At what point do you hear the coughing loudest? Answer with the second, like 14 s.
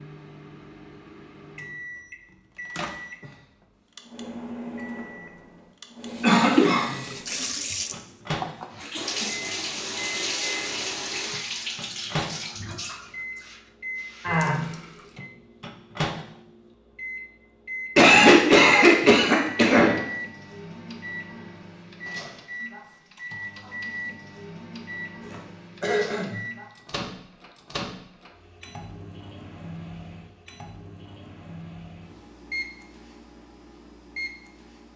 18 s.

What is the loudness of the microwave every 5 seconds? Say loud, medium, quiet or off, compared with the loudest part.
loud, loud, loud, loud, loud, loud, medium.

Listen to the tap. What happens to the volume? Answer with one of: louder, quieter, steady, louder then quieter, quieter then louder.
quieter then louder.